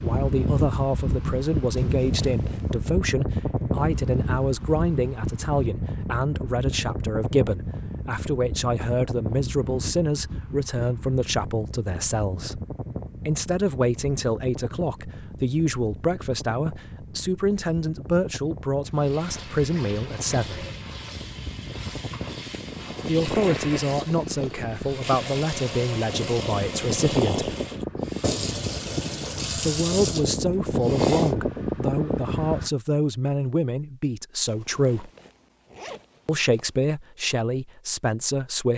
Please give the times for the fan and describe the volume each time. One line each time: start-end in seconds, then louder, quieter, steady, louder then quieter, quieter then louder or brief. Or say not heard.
0.0-32.7 quieter then louder.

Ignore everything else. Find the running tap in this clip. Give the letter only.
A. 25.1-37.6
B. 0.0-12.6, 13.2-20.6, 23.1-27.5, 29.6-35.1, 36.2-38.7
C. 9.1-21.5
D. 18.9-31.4
D.